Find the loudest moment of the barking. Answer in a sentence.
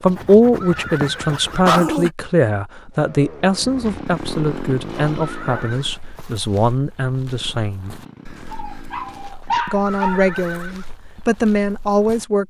The volume of the barking peaks at 2 seconds.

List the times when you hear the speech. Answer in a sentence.
The speech can be heard from 0.0 to 8.0 s and from 9.7 to 12.4 s.